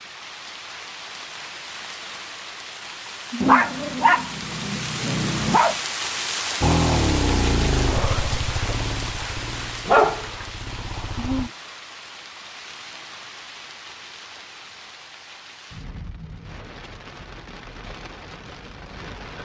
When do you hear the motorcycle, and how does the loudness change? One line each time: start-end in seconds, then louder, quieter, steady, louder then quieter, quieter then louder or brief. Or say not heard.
6.6-11.5 quieter.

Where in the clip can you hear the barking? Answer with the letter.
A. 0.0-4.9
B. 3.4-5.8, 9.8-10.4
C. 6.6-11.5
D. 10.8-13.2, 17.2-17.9
B.